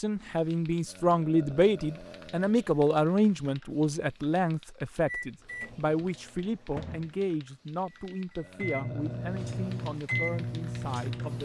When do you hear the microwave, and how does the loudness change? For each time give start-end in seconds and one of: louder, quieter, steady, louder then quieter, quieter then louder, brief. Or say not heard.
5.0-11.4 louder.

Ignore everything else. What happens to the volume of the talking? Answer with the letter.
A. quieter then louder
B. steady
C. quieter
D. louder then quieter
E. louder
C.